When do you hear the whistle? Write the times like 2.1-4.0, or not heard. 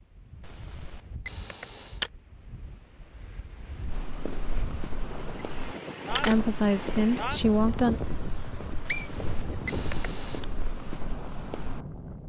8.3-9.1.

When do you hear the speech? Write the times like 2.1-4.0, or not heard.
6.2-8.0.